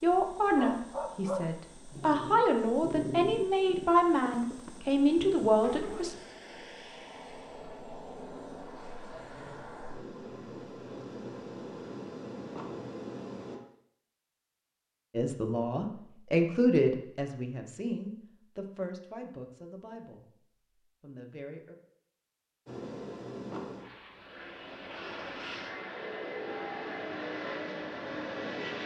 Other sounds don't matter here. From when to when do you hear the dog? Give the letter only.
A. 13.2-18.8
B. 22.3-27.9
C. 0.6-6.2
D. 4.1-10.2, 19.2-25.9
C.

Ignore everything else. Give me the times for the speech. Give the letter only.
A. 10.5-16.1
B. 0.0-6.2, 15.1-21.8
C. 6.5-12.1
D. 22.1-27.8
B.